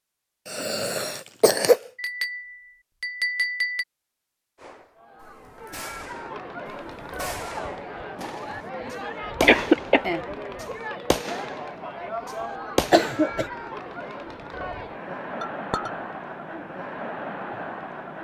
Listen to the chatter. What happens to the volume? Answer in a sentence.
The loudness of the chatter stays about the same.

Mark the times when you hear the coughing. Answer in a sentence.
The coughing can be heard from 0.5 to 1.8 s, from 9.4 to 10.1 s and from 12.9 to 13.5 s.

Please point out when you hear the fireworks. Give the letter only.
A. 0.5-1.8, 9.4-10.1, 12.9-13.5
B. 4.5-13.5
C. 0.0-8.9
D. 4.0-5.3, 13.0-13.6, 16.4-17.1
B.